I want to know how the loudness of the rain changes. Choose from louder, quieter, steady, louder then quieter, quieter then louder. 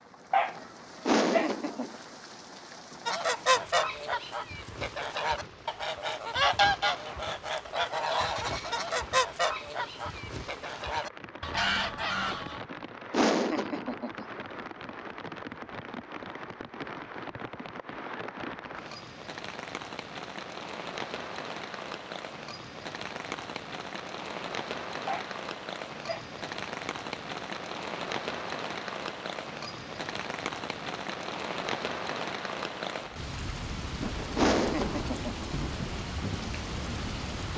louder.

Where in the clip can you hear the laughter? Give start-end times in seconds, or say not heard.
1.1-1.9, 13.1-14.2, 34.4-35.5.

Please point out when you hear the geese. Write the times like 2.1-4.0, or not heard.
3.0-12.6.